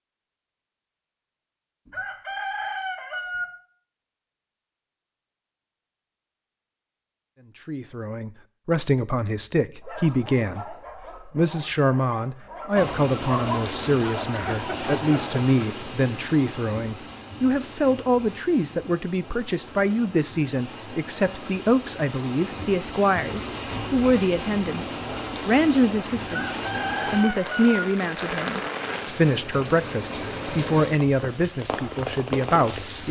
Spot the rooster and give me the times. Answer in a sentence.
You can hear the rooster from 1.9 to 3.5 s and from 26.2 to 27.9 s.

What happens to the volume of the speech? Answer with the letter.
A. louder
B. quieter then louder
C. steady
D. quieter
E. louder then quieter
C.